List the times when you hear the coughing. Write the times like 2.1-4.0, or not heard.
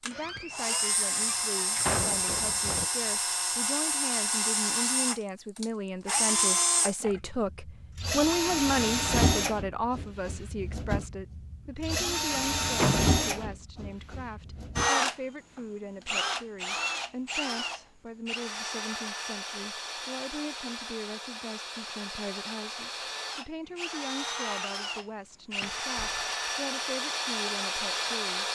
not heard.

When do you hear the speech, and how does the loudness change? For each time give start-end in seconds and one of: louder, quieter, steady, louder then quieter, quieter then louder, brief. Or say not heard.
0.0-28.5 louder then quieter.